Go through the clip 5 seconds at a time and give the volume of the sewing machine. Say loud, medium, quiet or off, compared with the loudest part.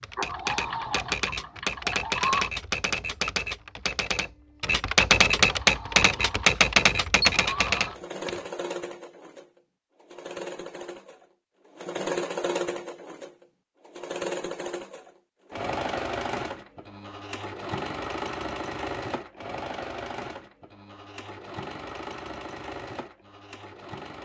loud, medium, loud, loud, medium.